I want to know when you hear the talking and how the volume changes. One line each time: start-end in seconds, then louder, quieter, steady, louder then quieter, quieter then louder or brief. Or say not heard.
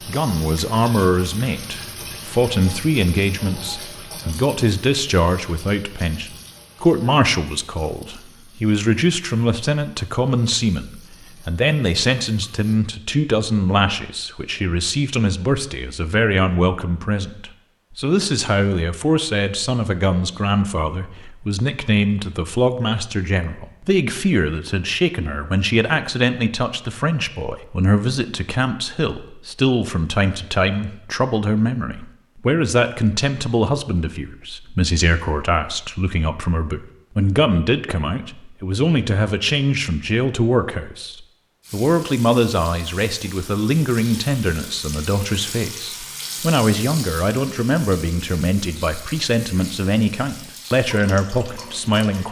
0.0-52.2 steady.